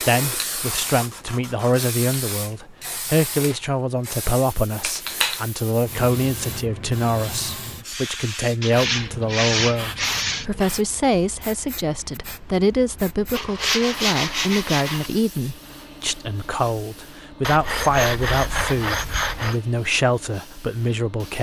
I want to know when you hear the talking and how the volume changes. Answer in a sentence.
You can hear the talking from 0.1 to 21.3 s, at a steady volume.